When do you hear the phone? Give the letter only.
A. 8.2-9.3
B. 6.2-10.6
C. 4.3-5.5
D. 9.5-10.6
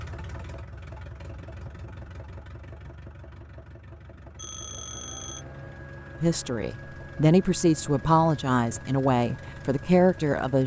C.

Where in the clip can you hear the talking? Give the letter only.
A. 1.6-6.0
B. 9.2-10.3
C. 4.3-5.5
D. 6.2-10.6
D.